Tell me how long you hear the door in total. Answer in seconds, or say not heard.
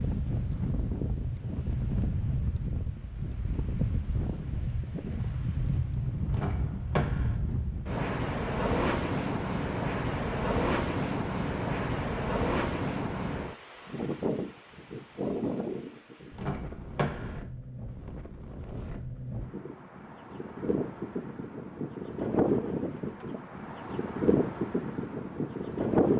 2 s.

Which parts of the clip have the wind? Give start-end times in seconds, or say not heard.
0.0-26.1.